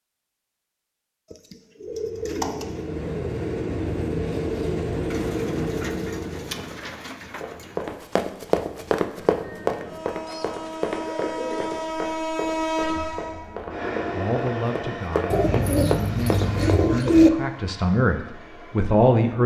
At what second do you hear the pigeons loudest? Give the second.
17 s.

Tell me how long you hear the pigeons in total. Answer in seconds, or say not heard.
8 s.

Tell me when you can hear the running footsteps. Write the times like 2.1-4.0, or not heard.
7.4-16.6.